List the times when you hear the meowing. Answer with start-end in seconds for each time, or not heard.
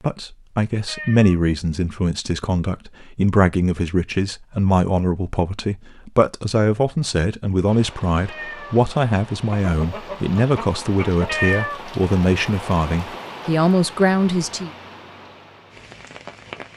0.8-1.4, 8.2-8.8, 11.2-11.8.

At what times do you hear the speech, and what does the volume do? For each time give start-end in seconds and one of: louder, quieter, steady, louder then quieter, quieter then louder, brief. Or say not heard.
0.0-14.7 steady.